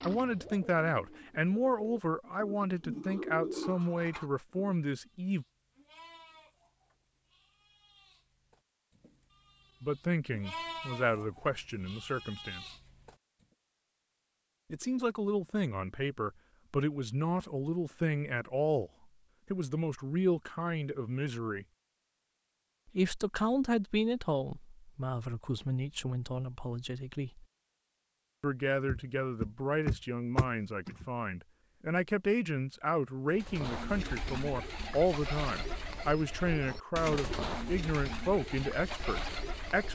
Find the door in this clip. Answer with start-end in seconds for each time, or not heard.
28.9-31.1.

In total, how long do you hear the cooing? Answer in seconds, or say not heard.
11 s.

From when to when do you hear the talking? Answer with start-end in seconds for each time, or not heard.
0.1-5.5, 9.8-12.7, 14.7-18.9, 19.5-21.6, 22.9-27.4, 28.4-39.9.